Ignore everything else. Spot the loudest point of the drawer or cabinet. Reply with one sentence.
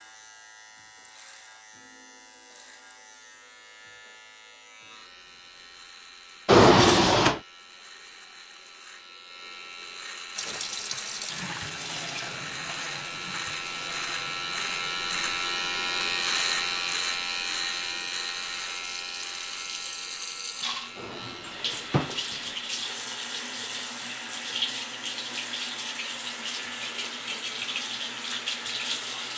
The volume of the drawer or cabinet peaks at 7 seconds.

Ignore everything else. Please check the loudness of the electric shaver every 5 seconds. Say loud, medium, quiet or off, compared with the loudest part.
quiet, quiet, medium, loud, quiet, quiet.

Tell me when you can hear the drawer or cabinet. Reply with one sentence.
The drawer or cabinet can be heard from 6.5 to 7.4 s and from 20.9 to 22.2 s.